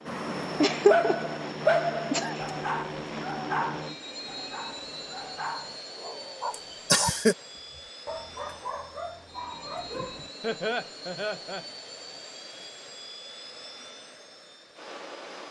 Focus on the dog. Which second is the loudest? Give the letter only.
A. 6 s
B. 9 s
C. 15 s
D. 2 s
D.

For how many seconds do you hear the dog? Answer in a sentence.
The dog can be heard for 10 seconds in total.